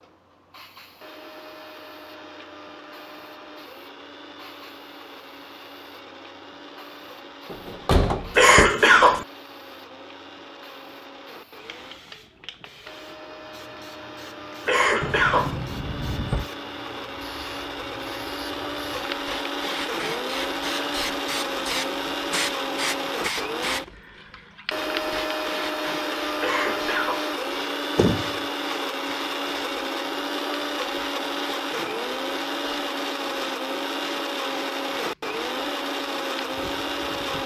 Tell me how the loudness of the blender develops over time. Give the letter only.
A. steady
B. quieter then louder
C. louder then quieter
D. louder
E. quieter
D.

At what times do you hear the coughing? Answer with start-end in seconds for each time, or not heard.
8.3-9.2, 14.7-15.6, 26.4-27.2.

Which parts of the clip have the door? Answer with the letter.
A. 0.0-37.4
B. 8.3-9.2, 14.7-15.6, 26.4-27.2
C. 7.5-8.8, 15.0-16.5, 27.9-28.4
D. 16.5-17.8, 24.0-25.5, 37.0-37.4
C.